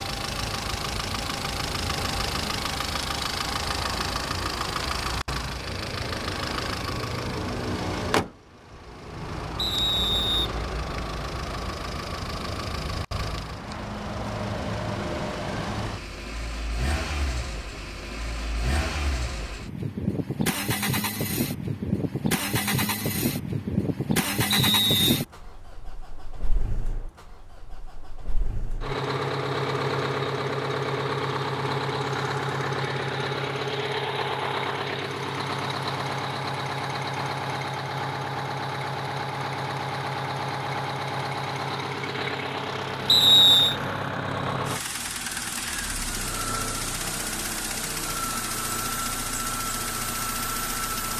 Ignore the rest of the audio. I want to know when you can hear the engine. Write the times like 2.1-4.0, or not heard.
0.0-51.1.